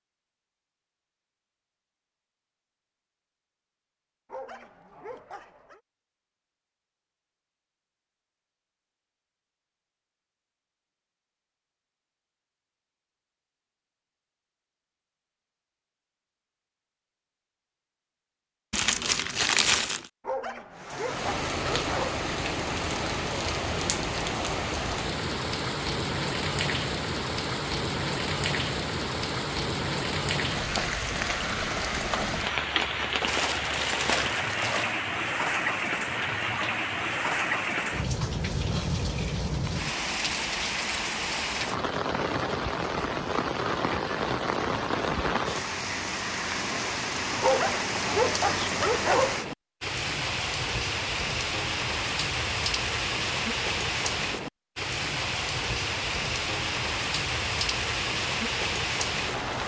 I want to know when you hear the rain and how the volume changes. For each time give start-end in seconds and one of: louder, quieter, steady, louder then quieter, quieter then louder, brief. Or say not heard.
20.8-59.6 steady.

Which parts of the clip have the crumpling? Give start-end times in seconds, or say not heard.
18.7-20.1, 33.2-35.0.